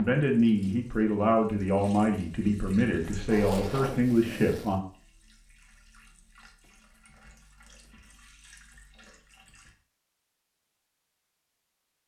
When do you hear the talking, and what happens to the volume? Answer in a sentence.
The talking can be heard from 0.0 to 4.8 s, at a steady volume.